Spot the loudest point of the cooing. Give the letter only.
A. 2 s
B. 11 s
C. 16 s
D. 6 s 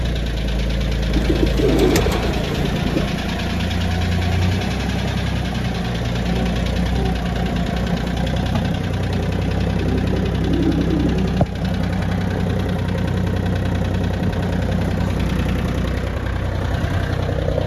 A.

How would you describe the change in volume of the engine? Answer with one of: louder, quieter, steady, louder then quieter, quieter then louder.
steady.